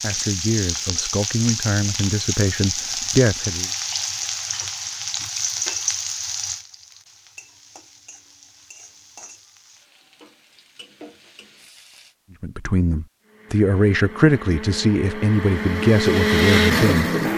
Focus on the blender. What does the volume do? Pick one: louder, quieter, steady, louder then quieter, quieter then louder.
louder.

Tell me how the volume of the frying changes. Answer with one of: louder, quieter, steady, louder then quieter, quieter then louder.
quieter.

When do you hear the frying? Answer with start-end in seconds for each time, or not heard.
0.0-12.2.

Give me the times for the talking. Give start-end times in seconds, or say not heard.
0.0-3.7, 12.4-17.1.